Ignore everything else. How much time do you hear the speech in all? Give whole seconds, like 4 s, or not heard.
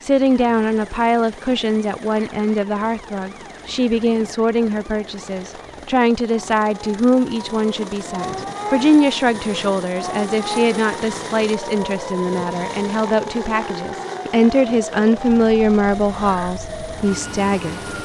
18 s.